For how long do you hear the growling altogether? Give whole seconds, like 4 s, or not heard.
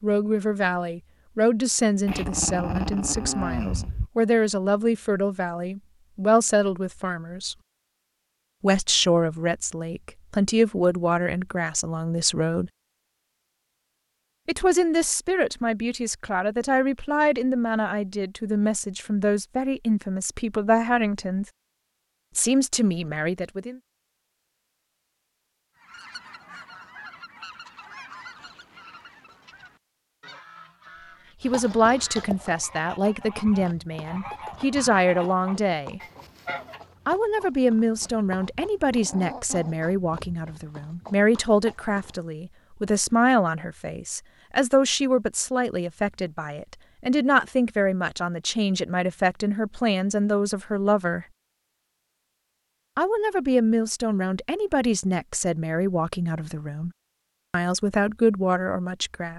3 s.